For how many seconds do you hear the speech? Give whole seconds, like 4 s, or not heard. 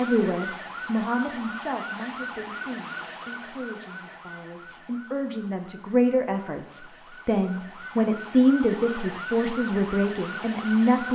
11 s.